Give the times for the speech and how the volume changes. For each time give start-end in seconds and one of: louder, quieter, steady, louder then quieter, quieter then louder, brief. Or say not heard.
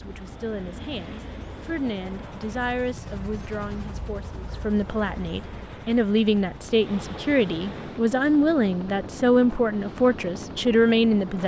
0.0-11.4 louder.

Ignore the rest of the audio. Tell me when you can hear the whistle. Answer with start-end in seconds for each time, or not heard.
not heard.